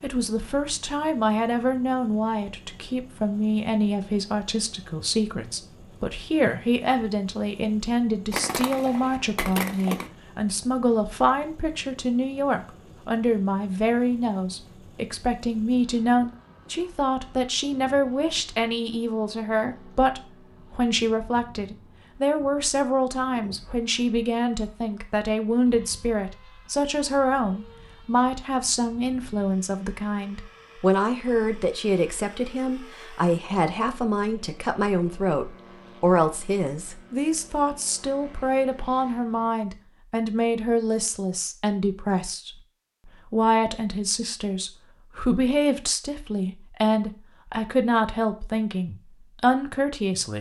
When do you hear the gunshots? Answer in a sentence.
The gunshots can be heard from 8.3 to 10.1 s.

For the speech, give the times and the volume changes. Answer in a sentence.
The speech can be heard from 0.0 to 50.3 s, at a steady volume.